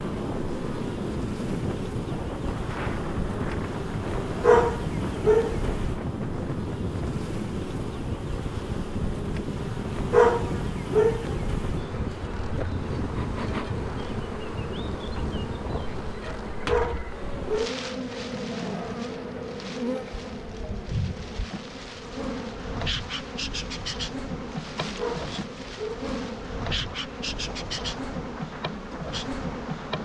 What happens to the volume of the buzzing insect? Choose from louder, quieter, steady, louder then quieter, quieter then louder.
steady.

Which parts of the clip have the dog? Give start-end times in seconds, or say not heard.
4.4-5.5, 10.1-11.2, 16.6-17.8, 24.9-26.1.